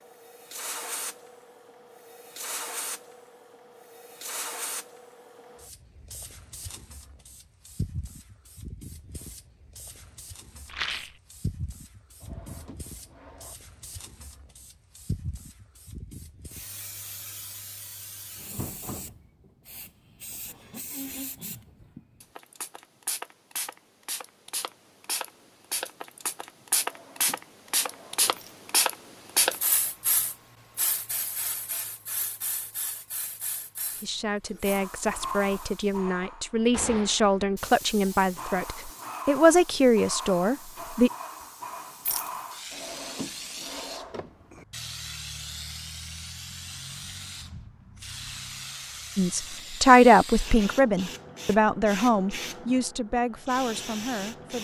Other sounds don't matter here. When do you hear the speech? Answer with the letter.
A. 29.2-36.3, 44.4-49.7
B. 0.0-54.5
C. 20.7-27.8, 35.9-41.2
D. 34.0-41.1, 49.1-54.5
D.